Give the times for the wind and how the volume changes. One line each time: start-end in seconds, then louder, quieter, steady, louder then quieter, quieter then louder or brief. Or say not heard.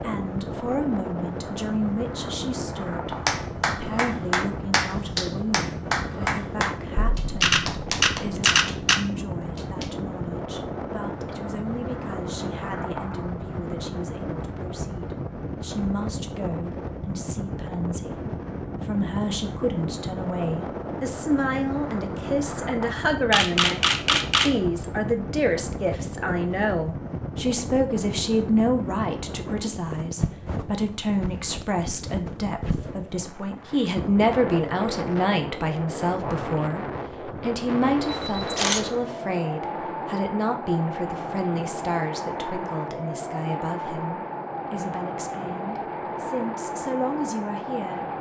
0.0-48.1 steady.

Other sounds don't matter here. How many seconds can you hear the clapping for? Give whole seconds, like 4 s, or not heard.
7 s.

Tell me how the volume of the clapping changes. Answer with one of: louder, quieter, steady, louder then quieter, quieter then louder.
quieter.